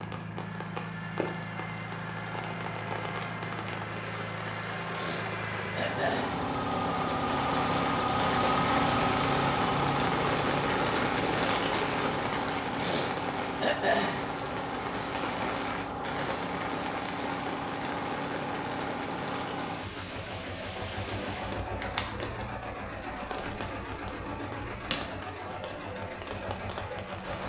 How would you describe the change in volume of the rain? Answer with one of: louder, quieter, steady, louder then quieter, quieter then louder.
louder then quieter.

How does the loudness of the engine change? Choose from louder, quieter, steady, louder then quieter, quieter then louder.
louder then quieter.